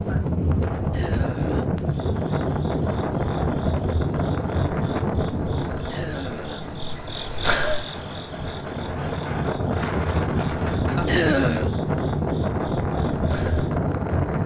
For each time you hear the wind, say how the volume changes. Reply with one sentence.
The wind can be heard from 0.0 to 14.4 s, getting quieter then louder.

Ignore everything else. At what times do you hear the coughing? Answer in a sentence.
The coughing can be heard from 0.9 to 1.7 s, from 5.8 to 6.8 s and from 11.1 to 11.7 s.